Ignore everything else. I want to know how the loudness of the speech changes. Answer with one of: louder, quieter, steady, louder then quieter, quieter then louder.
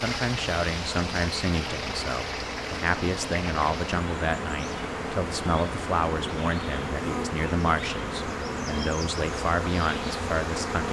steady.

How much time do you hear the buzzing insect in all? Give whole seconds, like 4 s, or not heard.
11 s.